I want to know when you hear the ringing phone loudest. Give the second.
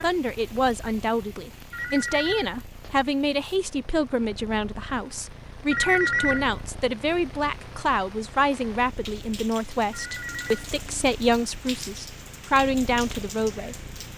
6 s.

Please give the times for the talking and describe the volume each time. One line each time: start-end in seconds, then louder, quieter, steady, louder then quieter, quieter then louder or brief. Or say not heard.
0.0-13.8 steady.